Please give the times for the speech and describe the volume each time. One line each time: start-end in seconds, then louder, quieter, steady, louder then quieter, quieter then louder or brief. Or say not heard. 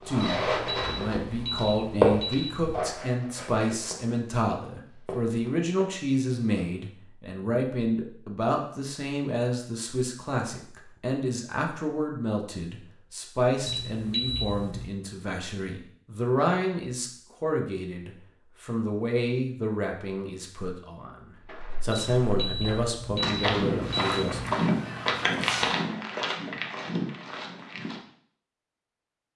0.1-24.4 steady.